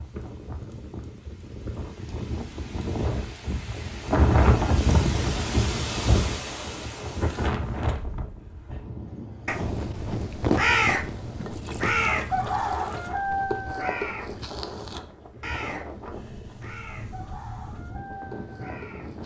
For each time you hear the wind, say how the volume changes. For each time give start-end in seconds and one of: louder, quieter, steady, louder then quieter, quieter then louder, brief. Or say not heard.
0.0-19.2 louder then quieter.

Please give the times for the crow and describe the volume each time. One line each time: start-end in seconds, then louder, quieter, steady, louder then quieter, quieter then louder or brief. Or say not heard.
9.4-19.2 quieter.